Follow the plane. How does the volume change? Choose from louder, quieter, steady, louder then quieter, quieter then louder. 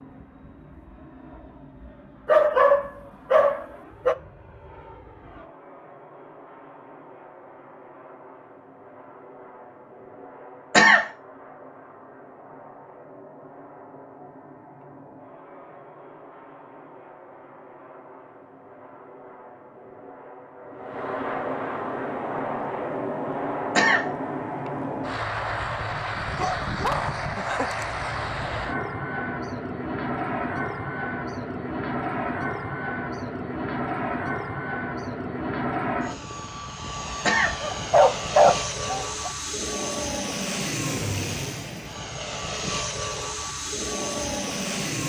louder.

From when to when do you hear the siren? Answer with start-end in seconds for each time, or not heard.
not heard.